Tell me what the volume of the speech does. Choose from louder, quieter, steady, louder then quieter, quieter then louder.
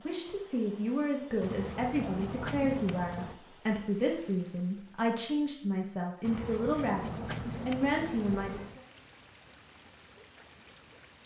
steady.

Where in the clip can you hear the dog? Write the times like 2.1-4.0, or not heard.
1.4-3.4, 6.2-8.8.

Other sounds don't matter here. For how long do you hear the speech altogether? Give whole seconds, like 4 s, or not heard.
9 s.